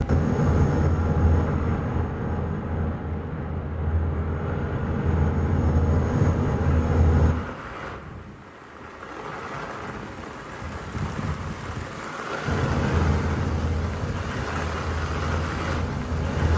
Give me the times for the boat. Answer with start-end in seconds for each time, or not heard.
0.0-7.3, 12.4-16.5.